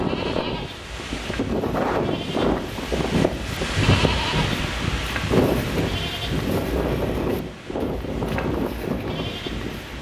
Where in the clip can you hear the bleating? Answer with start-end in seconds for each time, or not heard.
0.0-9.9.